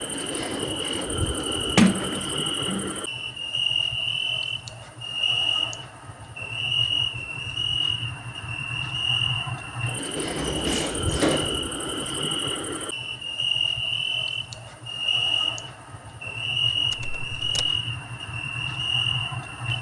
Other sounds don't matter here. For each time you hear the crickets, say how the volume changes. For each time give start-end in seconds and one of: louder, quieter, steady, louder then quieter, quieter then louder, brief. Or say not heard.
0.0-19.7 steady.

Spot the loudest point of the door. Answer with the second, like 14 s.
2 s.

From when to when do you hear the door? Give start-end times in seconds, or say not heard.
1.8-2.9, 10.2-11.6, 16.9-17.7.